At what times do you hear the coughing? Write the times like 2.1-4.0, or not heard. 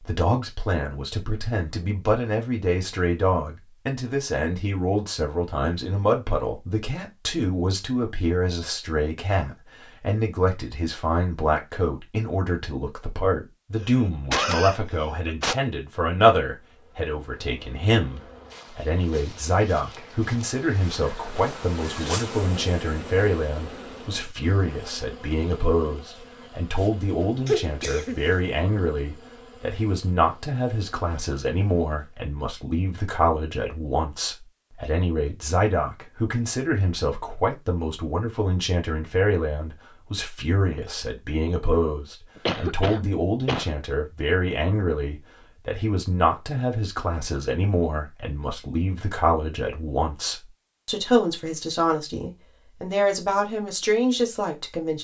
13.8-15.6, 27.4-28.2, 42.4-43.8.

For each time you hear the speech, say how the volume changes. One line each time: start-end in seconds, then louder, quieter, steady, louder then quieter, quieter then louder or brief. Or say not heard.
0.0-54.9 steady.